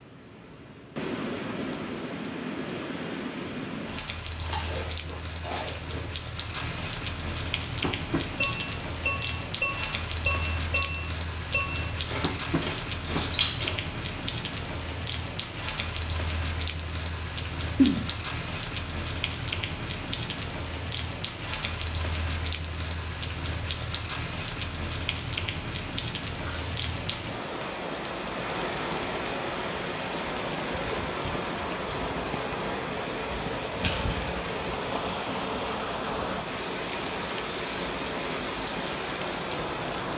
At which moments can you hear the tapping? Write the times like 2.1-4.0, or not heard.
7.8-13.2.